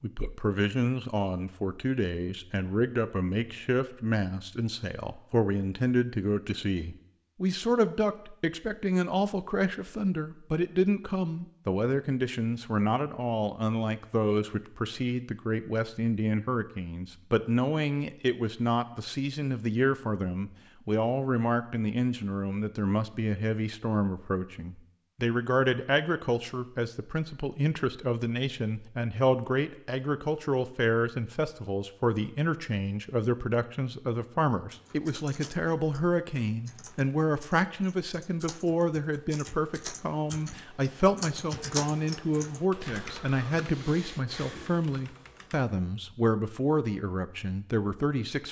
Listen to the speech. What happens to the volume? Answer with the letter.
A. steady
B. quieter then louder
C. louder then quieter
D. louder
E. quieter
A.